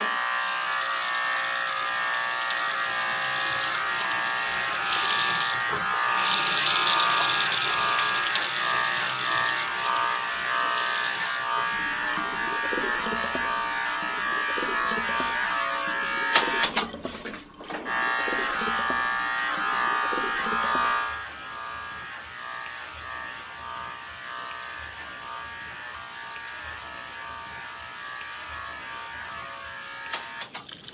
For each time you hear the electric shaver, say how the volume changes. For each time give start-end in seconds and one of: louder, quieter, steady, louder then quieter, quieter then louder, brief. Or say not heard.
0.0-30.8 quieter.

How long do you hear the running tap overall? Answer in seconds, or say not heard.
31 s.